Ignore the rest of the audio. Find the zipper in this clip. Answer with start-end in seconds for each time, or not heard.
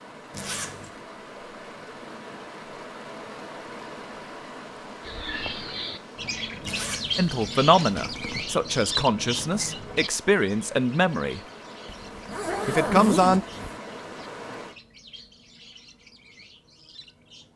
0.3-0.9, 6.6-8.4, 11.8-13.8.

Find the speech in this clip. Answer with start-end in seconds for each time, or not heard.
7.2-11.4, 12.7-13.4.